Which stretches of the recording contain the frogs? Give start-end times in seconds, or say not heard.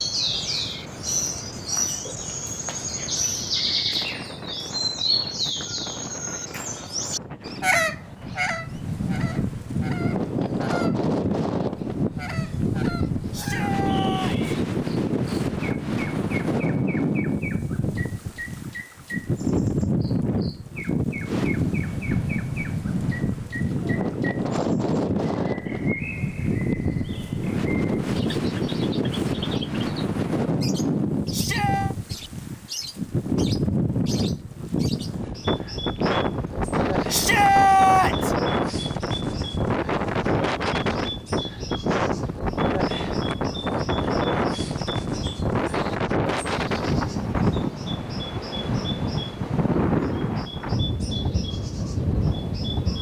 not heard.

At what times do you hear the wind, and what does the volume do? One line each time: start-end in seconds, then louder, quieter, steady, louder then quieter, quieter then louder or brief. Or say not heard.
0.0-52.9 louder.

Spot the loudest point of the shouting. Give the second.
38 s.